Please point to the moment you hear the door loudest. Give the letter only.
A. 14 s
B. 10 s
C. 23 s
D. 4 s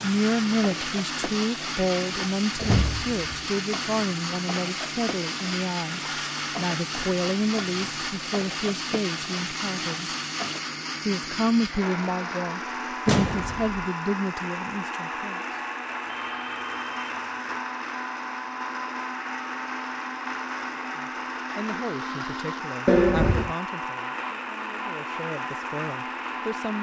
C.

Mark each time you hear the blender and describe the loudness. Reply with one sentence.
You can hear the blender from 0.0 to 26.7 s, at a steady volume.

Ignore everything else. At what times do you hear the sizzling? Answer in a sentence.
You can hear the sizzling from 0.0 to 10.6 s.